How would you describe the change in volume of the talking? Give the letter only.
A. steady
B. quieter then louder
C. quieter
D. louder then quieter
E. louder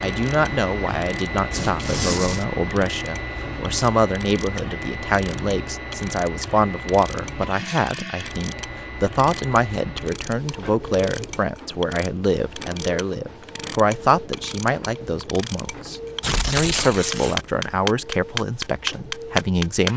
A.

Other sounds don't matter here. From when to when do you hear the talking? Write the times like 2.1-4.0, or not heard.
0.0-19.9.